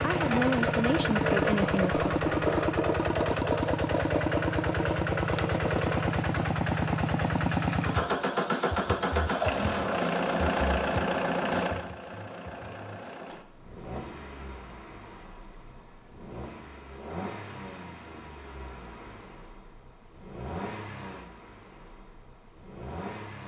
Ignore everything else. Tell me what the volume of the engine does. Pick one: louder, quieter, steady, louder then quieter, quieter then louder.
quieter.